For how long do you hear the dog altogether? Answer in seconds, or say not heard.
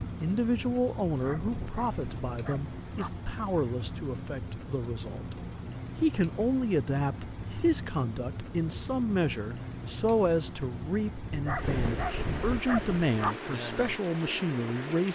4 s.